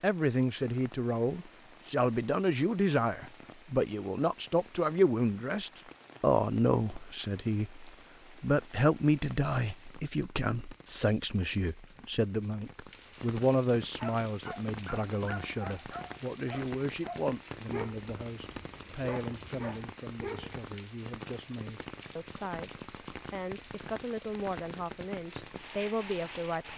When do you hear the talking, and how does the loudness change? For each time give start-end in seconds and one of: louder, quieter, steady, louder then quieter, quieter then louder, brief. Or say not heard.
0.0-26.7 quieter.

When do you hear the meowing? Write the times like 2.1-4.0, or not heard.
not heard.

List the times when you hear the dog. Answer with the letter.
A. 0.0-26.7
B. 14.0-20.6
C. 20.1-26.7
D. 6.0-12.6
B.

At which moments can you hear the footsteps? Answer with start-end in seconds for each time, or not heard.
not heard.